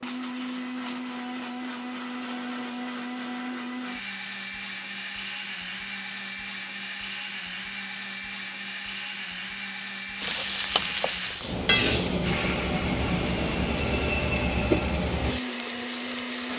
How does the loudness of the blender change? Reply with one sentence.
The volume of the blender stays about the same.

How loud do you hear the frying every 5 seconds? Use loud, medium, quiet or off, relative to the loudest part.
off, off, loud, loud.